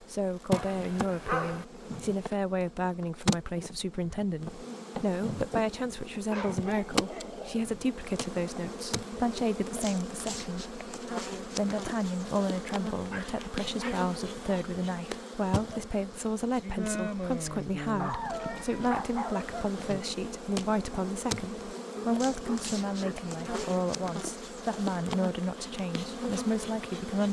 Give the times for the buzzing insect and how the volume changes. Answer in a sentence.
The buzzing insect can be heard from 0.0 to 27.2 s, at a steady volume.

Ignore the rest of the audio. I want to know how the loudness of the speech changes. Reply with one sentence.
The volume of the speech stays about the same.